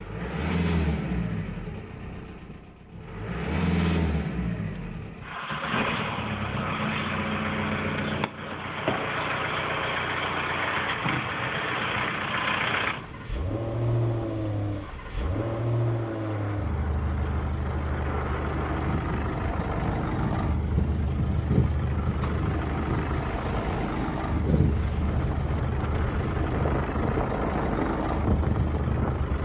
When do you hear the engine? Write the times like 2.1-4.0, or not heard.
0.0-29.3.